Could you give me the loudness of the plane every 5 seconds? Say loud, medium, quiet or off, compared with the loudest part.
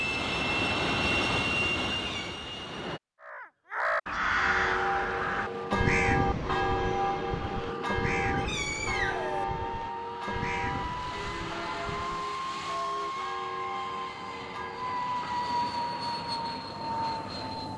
loud, medium, medium, loud.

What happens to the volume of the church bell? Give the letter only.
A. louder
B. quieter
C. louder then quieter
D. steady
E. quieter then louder
B.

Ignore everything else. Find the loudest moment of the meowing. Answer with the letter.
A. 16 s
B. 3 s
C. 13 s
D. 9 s
D.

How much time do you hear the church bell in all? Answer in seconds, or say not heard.
11 s.